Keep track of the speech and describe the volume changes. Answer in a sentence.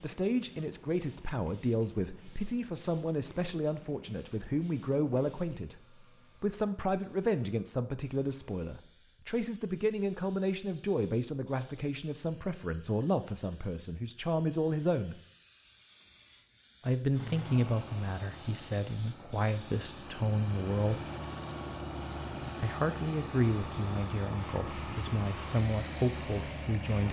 The volume of the speech stays about the same.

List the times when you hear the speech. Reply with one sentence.
The speech can be heard from 0.0 to 5.8 s, from 6.4 to 15.2 s, from 16.8 to 21.0 s and from 22.6 to 27.0 s.